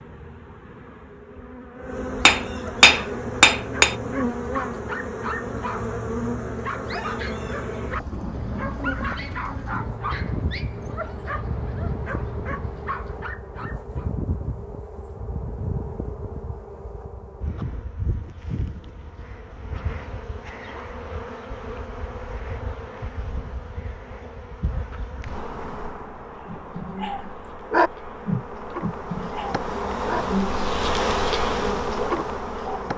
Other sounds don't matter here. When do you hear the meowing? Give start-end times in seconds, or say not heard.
not heard.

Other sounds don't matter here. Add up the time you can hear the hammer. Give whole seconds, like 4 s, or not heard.
2 s.